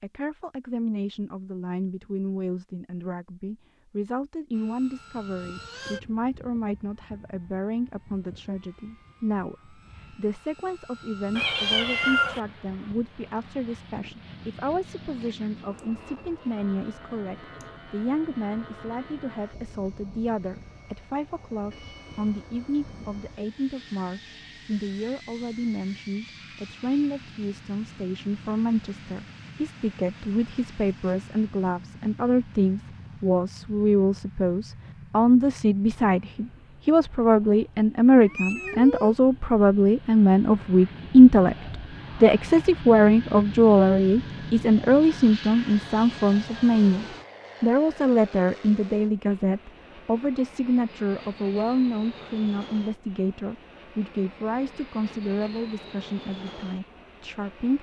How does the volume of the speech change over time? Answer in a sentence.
The volume of the speech goes up, then down.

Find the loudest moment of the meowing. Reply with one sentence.
The loudest moment of the meowing is at 12 seconds.